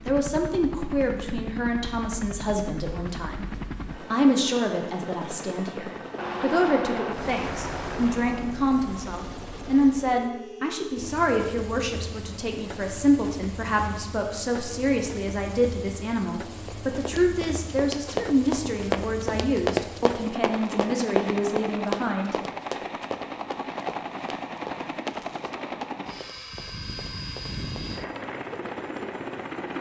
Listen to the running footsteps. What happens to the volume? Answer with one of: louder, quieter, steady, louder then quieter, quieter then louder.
quieter.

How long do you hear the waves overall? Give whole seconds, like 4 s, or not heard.
not heard.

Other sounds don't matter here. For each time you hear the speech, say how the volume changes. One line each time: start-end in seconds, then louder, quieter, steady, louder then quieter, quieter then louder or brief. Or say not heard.
0.1-22.4 steady.